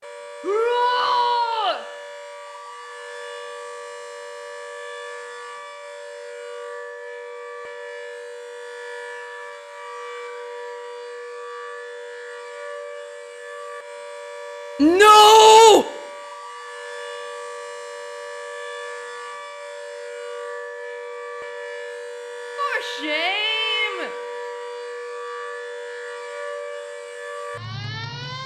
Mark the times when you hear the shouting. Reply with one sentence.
The shouting can be heard from 0.4 to 1.8 s, from 14.8 to 15.8 s and from 22.6 to 24.1 s.